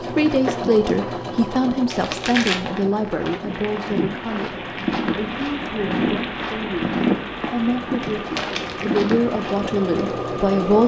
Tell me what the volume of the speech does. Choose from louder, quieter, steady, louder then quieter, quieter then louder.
quieter then louder.